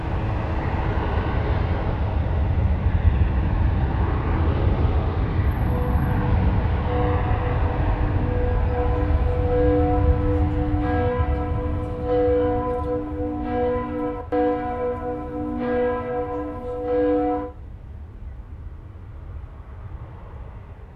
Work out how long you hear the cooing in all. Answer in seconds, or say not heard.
not heard.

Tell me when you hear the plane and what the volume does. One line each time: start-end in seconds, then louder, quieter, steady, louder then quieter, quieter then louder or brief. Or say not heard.
0.0-20.9 quieter.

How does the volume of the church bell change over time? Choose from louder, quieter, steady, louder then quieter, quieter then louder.
louder.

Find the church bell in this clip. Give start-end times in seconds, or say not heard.
5.5-17.5.